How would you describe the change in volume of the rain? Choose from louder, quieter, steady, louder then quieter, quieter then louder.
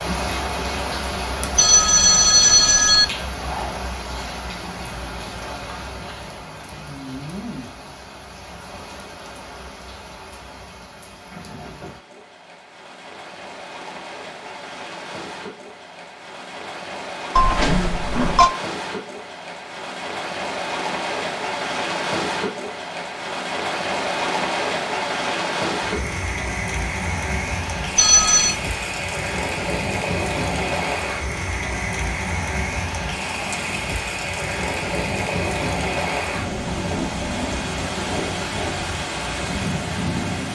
quieter then louder.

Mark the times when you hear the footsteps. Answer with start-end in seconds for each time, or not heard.
not heard.